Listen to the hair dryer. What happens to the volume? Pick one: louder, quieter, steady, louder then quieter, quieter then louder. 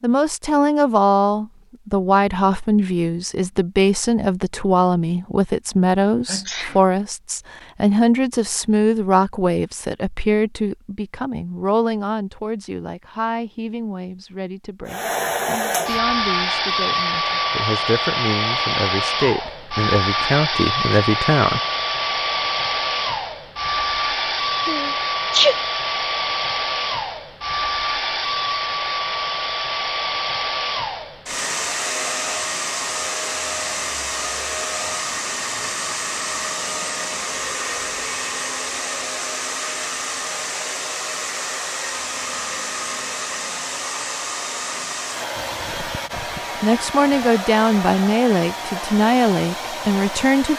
quieter.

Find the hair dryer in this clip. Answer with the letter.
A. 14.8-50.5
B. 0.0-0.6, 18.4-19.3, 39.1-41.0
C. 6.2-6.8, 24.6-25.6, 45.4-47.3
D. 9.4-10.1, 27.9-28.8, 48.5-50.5
A.